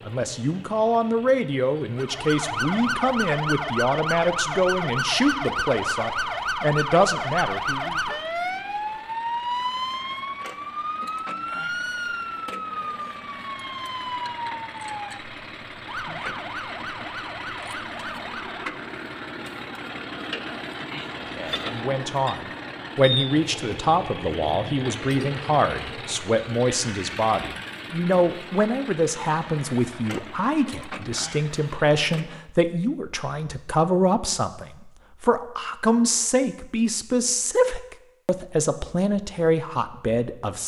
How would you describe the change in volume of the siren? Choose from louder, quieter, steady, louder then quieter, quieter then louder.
quieter.